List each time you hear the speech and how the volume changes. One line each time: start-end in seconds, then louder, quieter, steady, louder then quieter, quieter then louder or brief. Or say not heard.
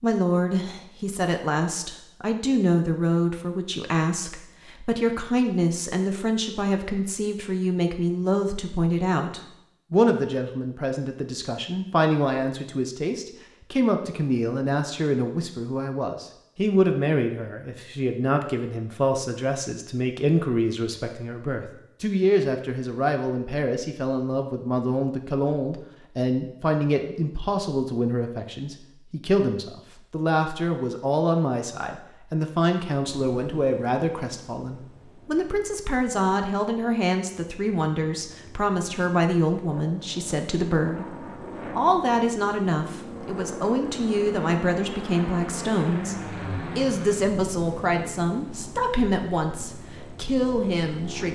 0.0-51.3 steady.